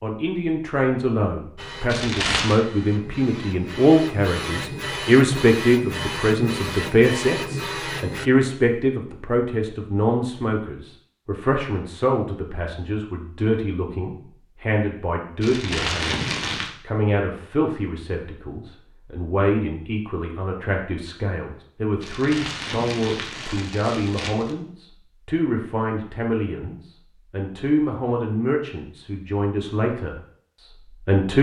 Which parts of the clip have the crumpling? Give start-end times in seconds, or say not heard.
1.9-2.6, 15.4-16.8, 22.0-24.6.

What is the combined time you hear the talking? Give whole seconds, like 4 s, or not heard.
31 s.